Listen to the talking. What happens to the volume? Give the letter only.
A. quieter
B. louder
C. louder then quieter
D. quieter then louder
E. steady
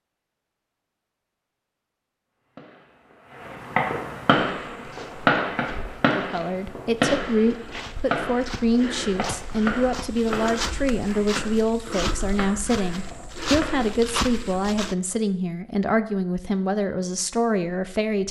E.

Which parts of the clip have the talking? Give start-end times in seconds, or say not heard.
6.2-18.2.